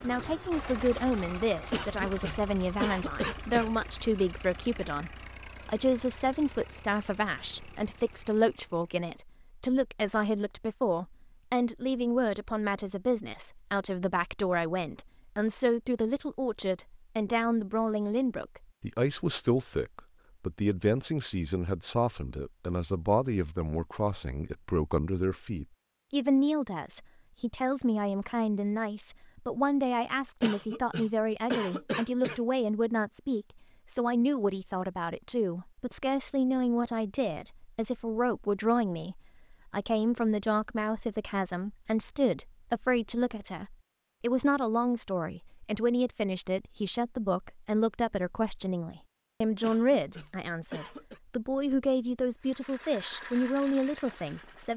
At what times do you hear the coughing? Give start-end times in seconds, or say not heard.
1.7-3.7, 30.4-32.4, 49.6-51.2.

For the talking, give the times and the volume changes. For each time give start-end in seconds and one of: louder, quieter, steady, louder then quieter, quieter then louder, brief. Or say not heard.
0.0-54.7 steady.